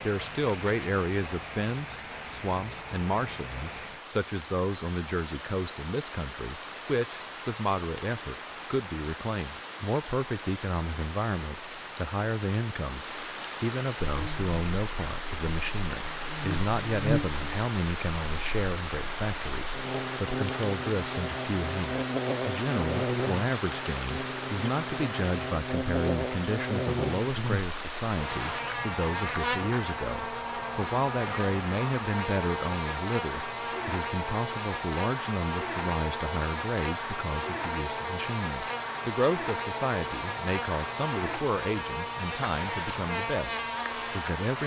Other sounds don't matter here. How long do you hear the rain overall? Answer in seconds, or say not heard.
29 s.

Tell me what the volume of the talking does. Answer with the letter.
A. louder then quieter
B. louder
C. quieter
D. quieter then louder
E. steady
E.